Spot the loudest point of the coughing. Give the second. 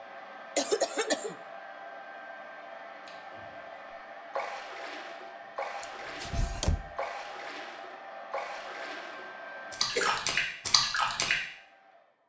1 s.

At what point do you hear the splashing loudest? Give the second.
11 s.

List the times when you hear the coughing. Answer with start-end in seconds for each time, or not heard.
0.6-1.4, 9.8-10.2.